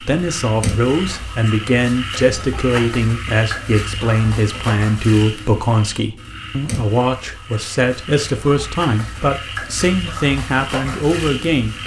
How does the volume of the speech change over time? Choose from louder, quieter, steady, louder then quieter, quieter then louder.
steady.